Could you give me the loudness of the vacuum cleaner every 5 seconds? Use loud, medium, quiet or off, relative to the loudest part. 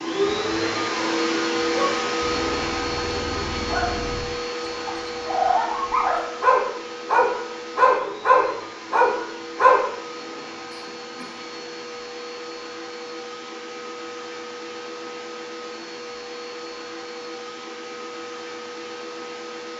loud, medium, medium, medium.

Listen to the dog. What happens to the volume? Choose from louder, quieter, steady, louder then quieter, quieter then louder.
louder.